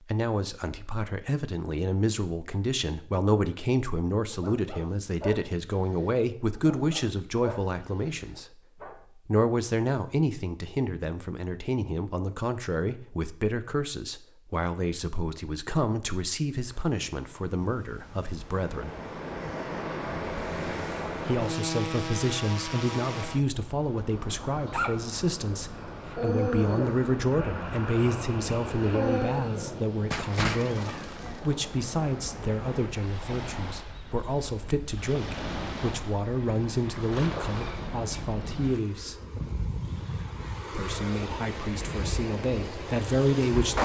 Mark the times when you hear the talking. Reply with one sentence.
You can hear the talking from 0.0 to 18.9 s, from 21.2 to 39.1 s and from 40.7 to 43.8 s.